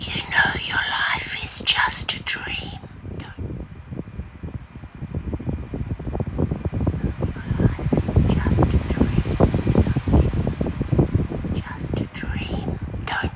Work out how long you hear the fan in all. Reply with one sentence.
The fan can be heard for 13 seconds in total.